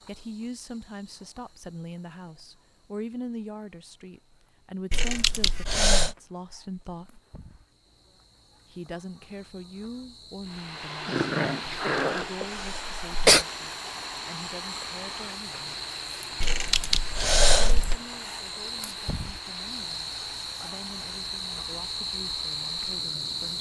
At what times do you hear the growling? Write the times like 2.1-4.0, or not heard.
11.1-12.4.